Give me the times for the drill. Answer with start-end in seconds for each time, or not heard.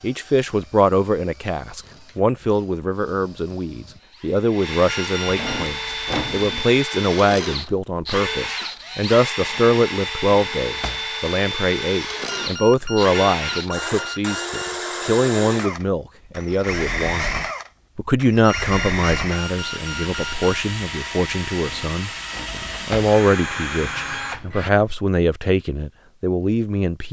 0.0-24.7.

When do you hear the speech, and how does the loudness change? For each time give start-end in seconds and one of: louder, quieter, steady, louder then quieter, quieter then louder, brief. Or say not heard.
0.0-27.0 steady.